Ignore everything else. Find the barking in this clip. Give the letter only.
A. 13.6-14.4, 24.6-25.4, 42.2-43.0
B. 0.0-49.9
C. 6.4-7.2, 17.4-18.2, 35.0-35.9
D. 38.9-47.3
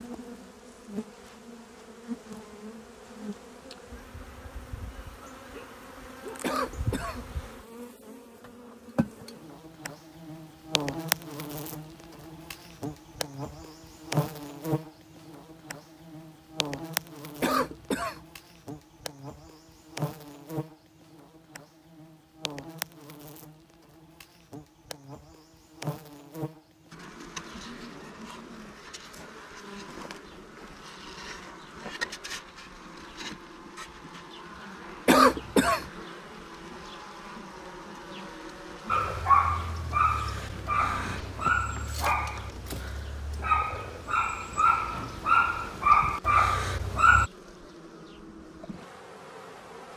D.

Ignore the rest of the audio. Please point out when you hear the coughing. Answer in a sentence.
You can hear the coughing from 6.4 to 7.2 s, from 17.4 to 18.2 s and from 35.0 to 35.9 s.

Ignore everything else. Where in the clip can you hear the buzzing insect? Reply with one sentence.
The buzzing insect can be heard from 0.0 to 49.9 s.